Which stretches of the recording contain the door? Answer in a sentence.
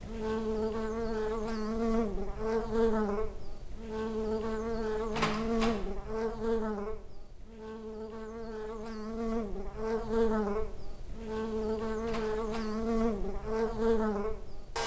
The door can be heard from 5.1 to 5.8 s and from 12.1 to 12.8 s.